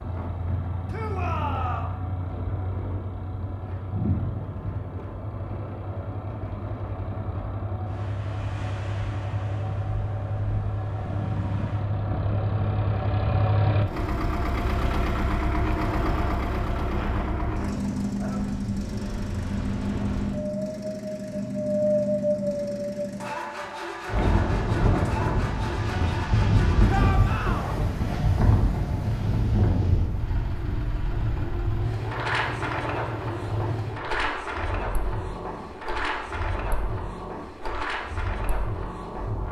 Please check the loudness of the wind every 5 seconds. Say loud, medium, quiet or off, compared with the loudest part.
quiet, quiet, quiet, medium, loud, loud, medium, medium.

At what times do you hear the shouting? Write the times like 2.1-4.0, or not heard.
0.9-1.9, 26.9-27.8.